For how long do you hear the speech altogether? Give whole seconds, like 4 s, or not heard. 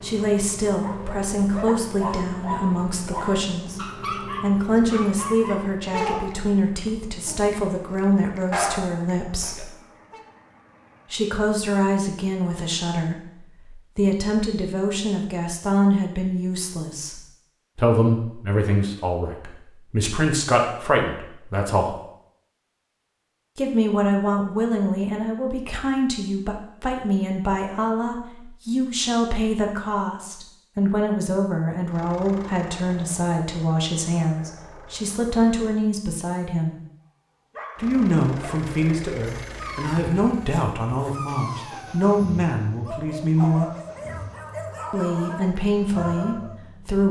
42 s.